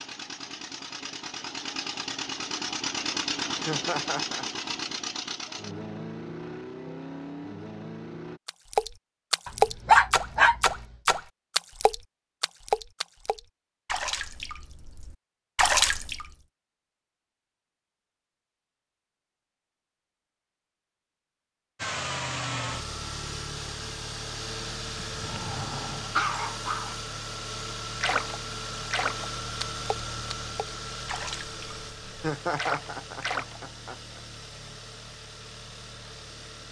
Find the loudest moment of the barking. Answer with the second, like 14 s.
10 s.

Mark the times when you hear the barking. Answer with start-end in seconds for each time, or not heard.
9.4-10.6, 25.1-26.9.